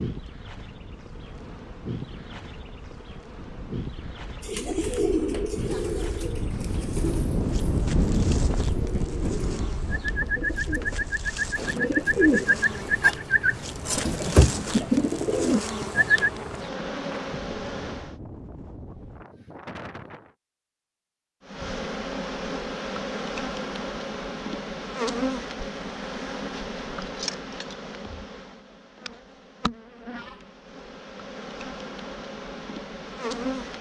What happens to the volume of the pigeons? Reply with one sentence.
The loudness of the pigeons goes down, then up.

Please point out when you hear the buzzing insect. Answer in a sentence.
You can hear the buzzing insect from 0.0 to 18.1 s and from 21.4 to 33.7 s.